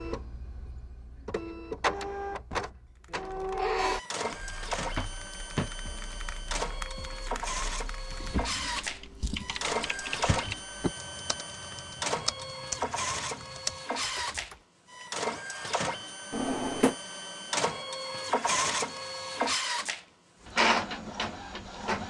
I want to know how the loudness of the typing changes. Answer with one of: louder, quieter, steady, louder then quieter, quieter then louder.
louder.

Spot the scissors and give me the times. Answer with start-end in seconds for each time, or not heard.
not heard.